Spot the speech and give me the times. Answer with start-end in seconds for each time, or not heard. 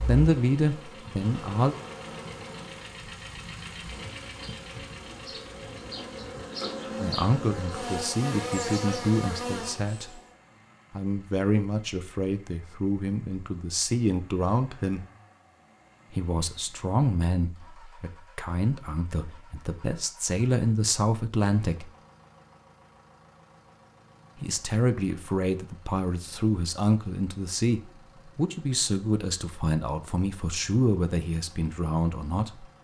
0.0-1.8, 7.0-10.2, 10.9-15.1, 16.1-21.9, 24.4-32.6.